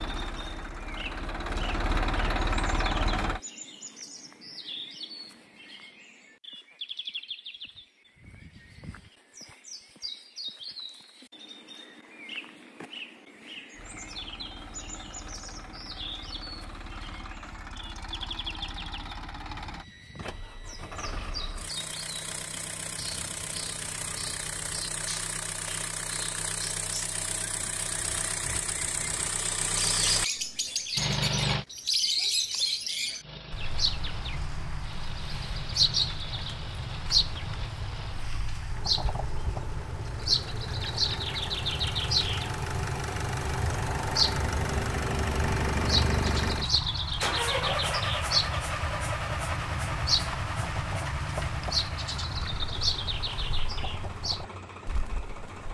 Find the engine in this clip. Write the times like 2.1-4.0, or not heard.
0.0-3.4, 13.7-31.6, 33.2-55.6.